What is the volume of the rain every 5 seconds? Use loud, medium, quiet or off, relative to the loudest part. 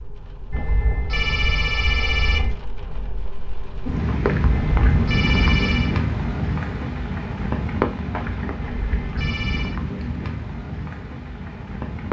loud, loud, medium.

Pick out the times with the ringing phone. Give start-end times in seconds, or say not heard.
0.5-2.5, 4.5-6.0, 8.6-9.8.